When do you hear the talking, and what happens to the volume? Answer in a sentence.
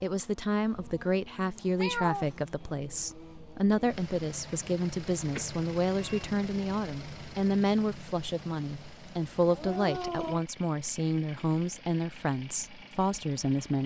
You can hear the talking from 0.0 to 13.8 s, at a steady volume.